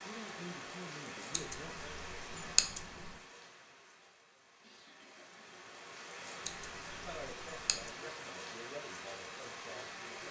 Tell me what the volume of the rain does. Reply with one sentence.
The volume of the rain goes down, then up.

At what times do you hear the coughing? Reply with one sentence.
The coughing can be heard from 4.6 to 5.5 s.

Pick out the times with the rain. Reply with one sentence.
The rain can be heard from 0.0 to 10.2 s.